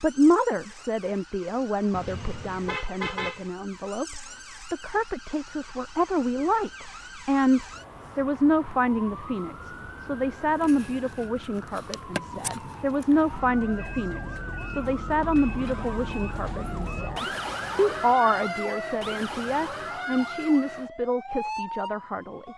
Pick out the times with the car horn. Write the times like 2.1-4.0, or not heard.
1.9-3.5.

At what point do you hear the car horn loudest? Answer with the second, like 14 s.
3 s.